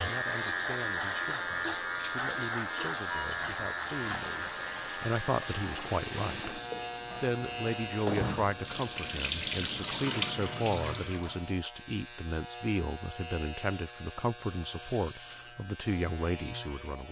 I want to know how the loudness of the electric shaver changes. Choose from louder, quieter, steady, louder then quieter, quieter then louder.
quieter.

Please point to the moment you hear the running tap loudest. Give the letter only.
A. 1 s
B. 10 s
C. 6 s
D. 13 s
B.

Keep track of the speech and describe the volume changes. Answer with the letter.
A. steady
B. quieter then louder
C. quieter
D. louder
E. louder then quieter
D.